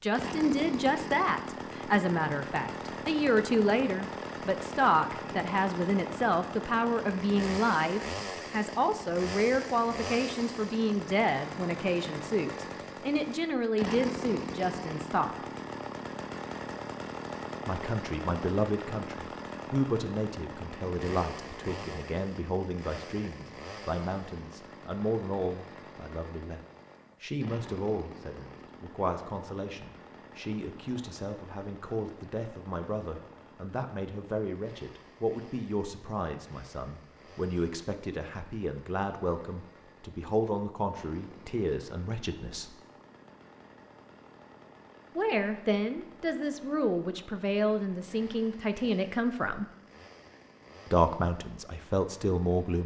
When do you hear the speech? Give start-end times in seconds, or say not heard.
0.0-15.3, 17.6-26.6, 27.2-42.8, 45.1-49.6, 50.9-52.8.